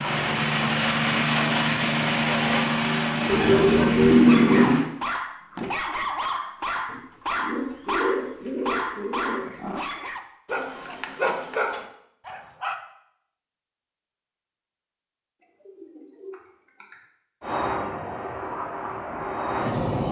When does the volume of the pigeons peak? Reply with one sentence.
The loudest moment of the pigeons is at 4 seconds.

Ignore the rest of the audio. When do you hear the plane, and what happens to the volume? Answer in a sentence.
The plane can be heard from 0.0 to 4.8 s, at a steady volume; and briefly from 17.4 to 20.0 s.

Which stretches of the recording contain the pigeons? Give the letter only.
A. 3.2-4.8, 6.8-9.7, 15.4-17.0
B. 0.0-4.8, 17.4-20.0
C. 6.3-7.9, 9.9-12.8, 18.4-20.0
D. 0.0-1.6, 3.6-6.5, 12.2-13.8
A.